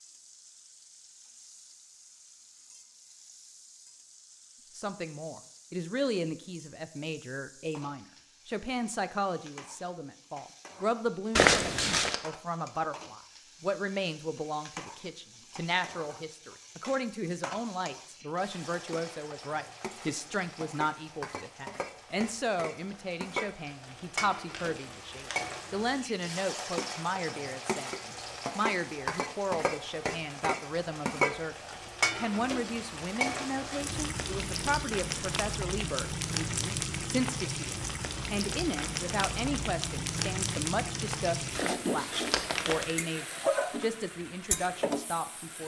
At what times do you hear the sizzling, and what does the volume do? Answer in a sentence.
You can hear the sizzling from 0.0 to 45.6 s, getting louder.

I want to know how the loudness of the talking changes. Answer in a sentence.
The loudness of the talking stays about the same.